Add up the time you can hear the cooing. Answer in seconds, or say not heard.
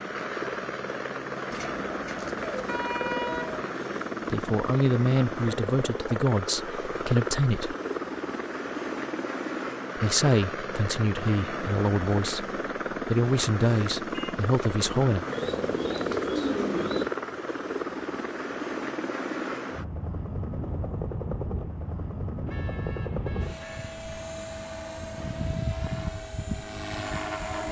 4 s.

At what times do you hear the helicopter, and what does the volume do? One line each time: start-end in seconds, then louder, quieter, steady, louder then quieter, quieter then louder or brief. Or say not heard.
0.0-27.6 steady.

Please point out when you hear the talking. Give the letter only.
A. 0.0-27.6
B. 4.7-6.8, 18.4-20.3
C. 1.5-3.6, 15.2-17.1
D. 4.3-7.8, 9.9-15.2
D.